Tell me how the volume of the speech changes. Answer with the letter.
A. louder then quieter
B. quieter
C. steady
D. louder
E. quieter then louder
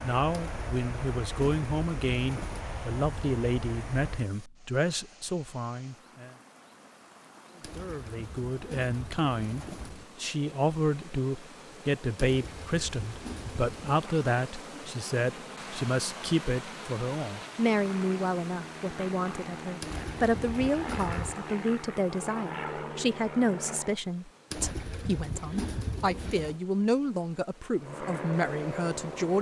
C.